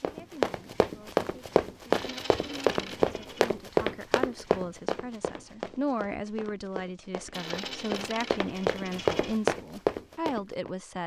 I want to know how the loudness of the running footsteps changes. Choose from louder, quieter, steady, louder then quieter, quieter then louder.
quieter then louder.